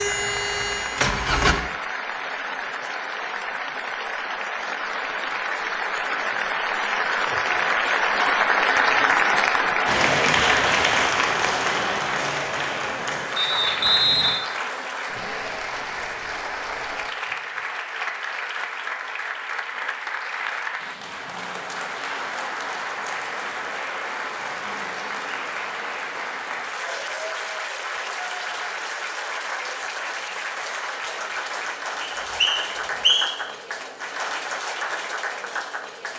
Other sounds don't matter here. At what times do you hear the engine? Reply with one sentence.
You can hear the engine from 0.0 to 1.6 s.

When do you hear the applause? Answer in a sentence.
You can hear the applause from 0.0 to 36.1 s.